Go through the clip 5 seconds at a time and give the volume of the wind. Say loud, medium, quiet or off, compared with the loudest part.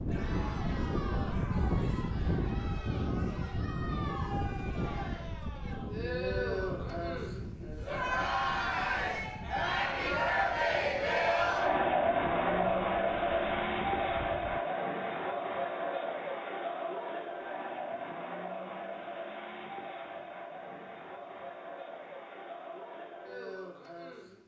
loud, medium, quiet, off, off.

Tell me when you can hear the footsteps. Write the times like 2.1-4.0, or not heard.
not heard.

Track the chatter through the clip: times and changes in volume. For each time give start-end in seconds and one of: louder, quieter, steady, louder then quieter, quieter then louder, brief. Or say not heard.
0.0-24.4 louder then quieter.